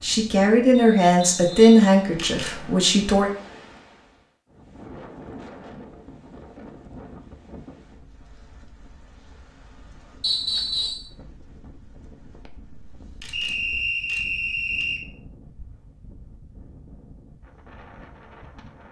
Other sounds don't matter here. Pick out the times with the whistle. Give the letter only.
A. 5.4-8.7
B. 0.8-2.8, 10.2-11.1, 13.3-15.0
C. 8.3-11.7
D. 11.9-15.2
B.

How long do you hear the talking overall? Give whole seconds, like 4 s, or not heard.
3 s.